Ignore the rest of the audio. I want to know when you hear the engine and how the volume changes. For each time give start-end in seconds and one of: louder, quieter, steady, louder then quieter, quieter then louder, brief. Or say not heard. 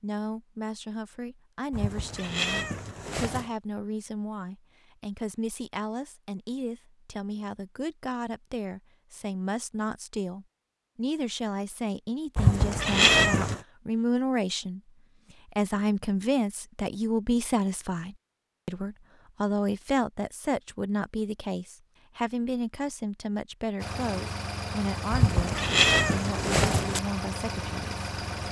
23.8-28.4 steady.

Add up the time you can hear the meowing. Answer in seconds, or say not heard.
5 s.